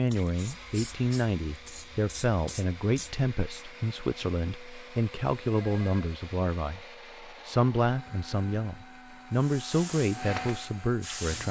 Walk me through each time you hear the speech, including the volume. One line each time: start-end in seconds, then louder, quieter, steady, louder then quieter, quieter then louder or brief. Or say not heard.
0.0-11.4 steady.